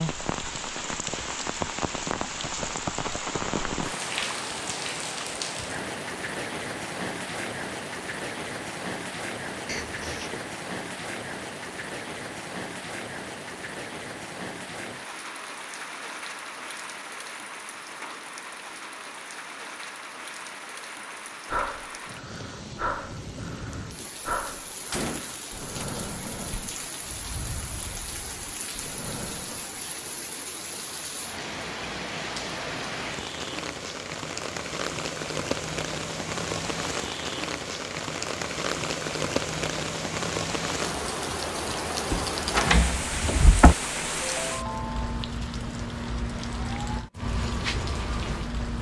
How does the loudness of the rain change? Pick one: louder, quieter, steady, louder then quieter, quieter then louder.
quieter then louder.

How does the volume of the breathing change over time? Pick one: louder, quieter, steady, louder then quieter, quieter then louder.
quieter.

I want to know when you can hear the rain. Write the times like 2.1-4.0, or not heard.
0.0-48.7.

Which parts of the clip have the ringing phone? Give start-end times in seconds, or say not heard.
44.2-45.3.